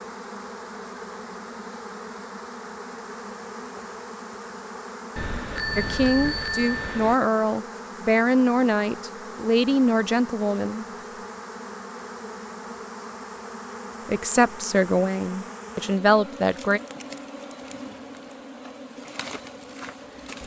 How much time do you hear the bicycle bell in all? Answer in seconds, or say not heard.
2 s.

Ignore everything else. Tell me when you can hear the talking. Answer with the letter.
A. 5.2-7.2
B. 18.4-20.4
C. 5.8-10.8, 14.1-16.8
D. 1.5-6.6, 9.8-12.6
C.